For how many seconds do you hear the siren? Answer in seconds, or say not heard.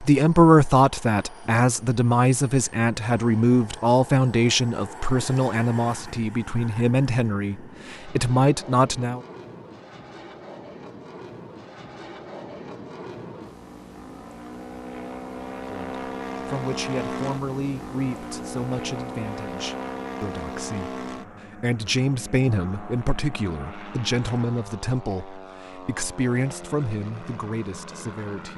not heard.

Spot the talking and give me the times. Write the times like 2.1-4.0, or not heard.
0.0-9.2, 15.6-20.9, 21.6-28.5.